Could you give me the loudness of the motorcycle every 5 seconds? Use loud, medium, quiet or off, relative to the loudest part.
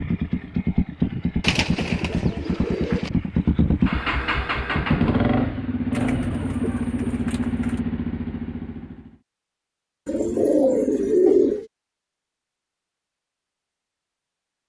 loud, loud, off.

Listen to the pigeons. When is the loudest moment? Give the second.
11 s.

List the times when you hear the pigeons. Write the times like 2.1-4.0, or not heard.
1.4-3.1, 5.9-7.8, 10.1-11.7.